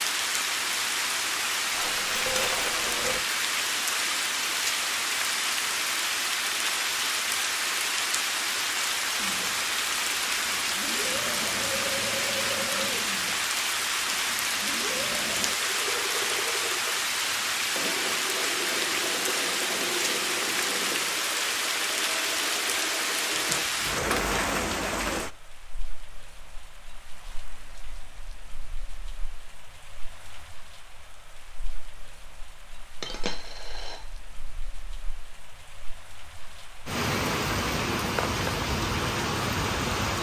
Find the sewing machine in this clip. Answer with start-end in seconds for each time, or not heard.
9.2-23.6.